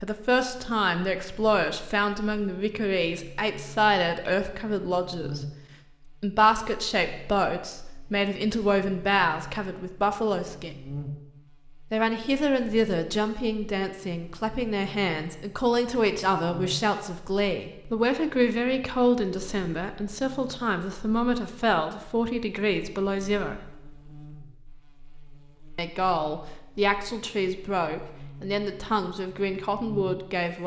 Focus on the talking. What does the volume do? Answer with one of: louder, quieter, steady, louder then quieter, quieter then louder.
steady.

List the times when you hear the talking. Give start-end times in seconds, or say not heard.
0.0-5.5, 6.2-10.8, 11.9-23.6, 25.8-30.6.